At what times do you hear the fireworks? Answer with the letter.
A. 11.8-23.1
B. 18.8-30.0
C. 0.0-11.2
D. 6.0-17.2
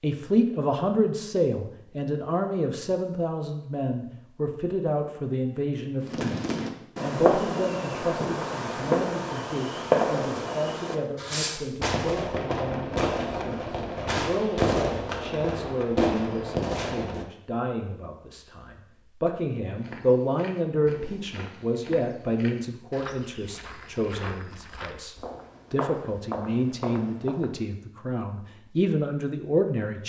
D.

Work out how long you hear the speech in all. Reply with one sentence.
You can hear the speech for 30 seconds altogether.